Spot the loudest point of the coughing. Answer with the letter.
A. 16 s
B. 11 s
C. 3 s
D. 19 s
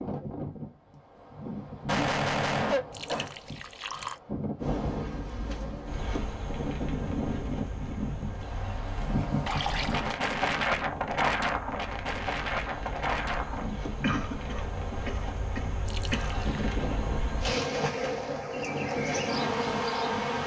C.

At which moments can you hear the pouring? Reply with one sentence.
You can hear the pouring from 2.9 to 4.2 s, from 9.4 to 10.2 s and from 15.8 to 16.6 s.